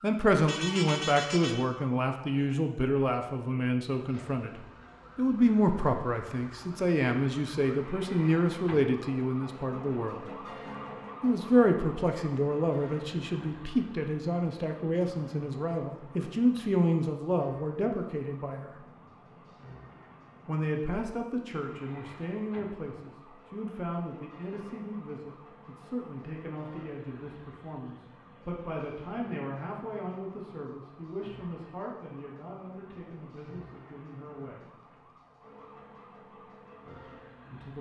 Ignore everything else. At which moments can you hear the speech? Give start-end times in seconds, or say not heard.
0.0-10.2, 11.2-18.9, 20.4-34.7, 36.9-37.7.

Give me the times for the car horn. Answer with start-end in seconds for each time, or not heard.
0.5-1.6.